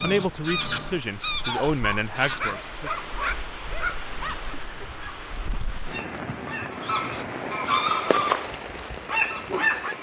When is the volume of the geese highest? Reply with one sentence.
The loudest moment of the geese is at 8 seconds.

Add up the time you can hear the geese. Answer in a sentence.
You can hear the geese for 6 seconds altogether.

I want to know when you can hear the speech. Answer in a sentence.
The speech can be heard from 0.0 to 2.9 s.